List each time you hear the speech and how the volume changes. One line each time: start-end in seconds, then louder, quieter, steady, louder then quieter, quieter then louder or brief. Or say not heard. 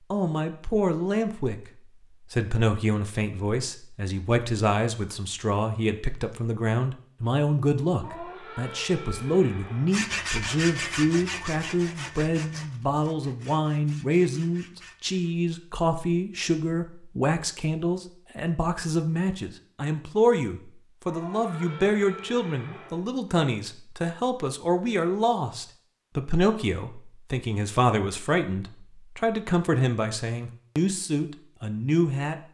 0.1-32.4 steady.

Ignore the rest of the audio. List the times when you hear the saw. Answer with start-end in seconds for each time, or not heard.
9.9-15.3.